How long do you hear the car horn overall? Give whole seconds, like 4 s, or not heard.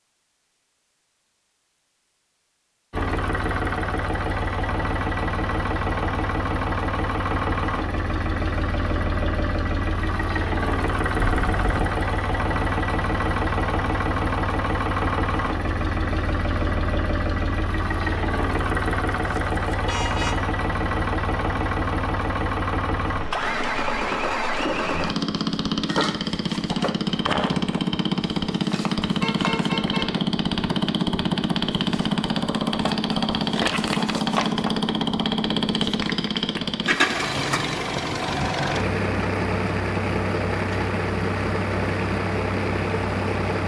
3 s.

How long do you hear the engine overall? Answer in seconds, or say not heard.
41 s.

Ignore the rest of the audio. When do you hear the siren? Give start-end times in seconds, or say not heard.
not heard.